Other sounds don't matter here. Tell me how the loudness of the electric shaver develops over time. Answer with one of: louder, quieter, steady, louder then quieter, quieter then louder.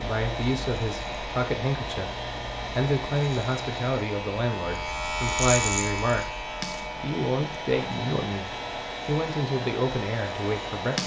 louder then quieter.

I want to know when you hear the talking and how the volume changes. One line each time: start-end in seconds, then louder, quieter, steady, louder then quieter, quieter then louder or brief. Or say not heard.
0.0-11.0 steady.